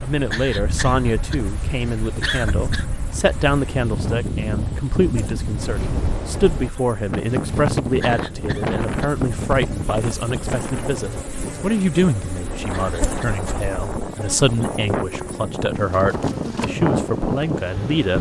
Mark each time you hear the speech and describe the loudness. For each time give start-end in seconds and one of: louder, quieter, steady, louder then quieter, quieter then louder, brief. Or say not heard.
0.0-18.1 steady.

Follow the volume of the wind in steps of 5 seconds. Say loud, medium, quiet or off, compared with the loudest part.
medium, loud, medium, loud.